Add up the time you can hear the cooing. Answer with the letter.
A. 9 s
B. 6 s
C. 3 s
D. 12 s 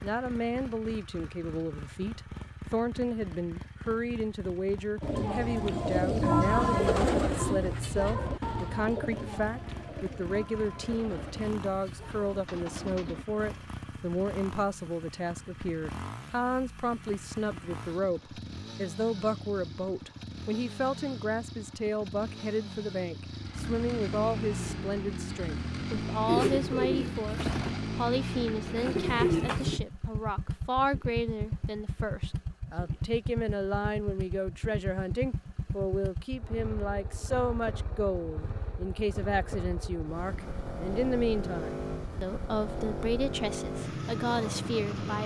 D.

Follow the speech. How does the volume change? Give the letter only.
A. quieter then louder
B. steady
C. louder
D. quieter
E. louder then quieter
B.